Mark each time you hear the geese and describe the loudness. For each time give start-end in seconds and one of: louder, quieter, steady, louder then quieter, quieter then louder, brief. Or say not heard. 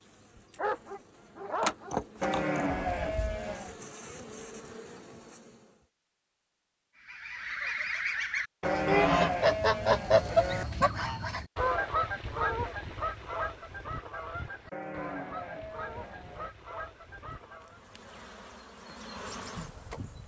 7.0-17.8 quieter.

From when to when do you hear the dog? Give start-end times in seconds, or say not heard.
0.6-1.9.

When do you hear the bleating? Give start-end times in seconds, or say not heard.
2.2-3.8, 8.6-10.7, 14.7-16.5.